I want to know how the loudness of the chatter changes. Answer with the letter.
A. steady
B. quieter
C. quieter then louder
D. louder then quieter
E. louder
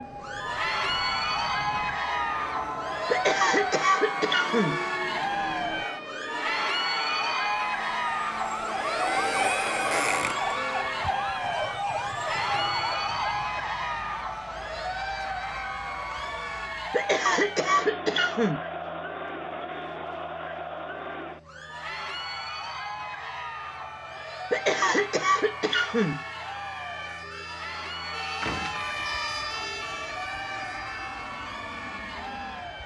B.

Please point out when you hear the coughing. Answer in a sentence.
You can hear the coughing from 3.1 to 4.8 s, from 16.9 to 18.6 s and from 24.5 to 26.2 s.